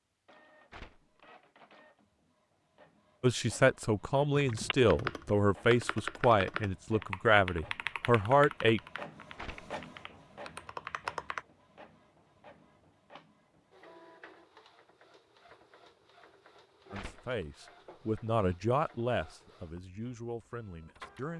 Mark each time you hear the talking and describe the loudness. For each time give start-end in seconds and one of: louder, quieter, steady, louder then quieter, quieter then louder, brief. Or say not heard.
3.2-8.8 steady
16.9-21.3 louder then quieter.